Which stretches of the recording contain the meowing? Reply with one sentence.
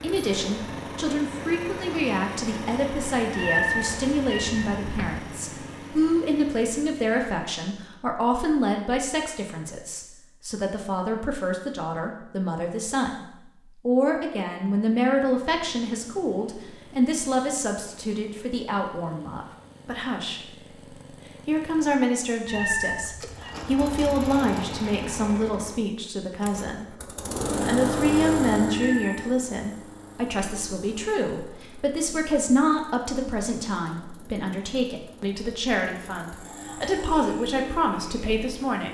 The meowing can be heard from 3.3 to 5.2 s, from 22.4 to 23.6 s and from 28.6 to 29.3 s.